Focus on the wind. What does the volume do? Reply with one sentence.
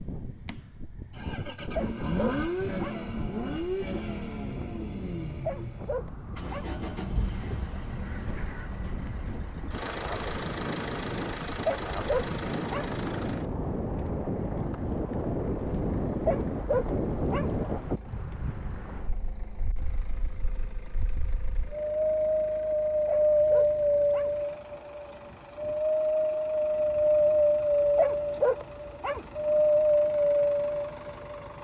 The volume of the wind goes up.